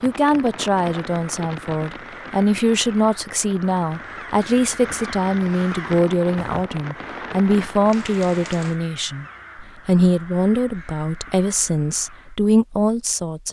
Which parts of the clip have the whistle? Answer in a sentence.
The whistle can't be heard in this clip.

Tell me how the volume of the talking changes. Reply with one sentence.
The volume of the talking stays about the same.